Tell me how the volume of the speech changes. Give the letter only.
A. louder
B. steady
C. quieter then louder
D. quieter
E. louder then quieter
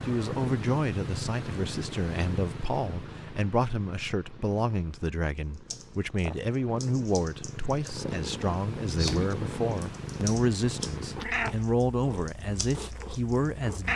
B.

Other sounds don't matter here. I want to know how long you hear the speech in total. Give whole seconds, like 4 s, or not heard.
14 s.